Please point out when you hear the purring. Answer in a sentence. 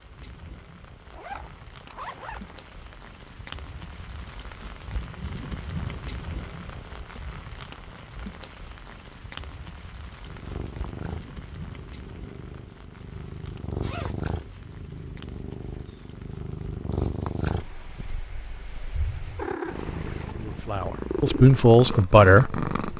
The purring can be heard from 10.2 to 22.9 s.